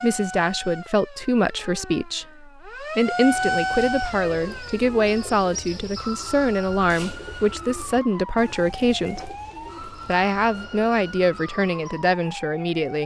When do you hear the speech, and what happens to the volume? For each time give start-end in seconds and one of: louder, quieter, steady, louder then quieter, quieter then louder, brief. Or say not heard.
0.0-9.3 steady
10.1-13.0 brief.